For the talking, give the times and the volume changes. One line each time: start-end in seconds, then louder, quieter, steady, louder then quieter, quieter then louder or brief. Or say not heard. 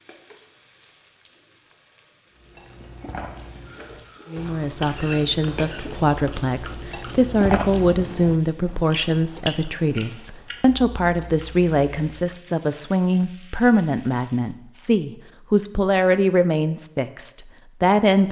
4.3-18.2 steady.